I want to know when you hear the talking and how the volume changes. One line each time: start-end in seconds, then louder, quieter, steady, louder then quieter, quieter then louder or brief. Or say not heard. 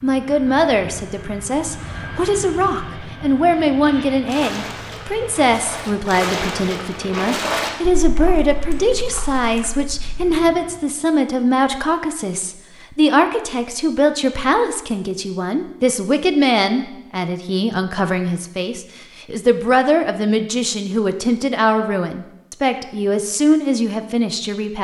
0.0-24.7 steady.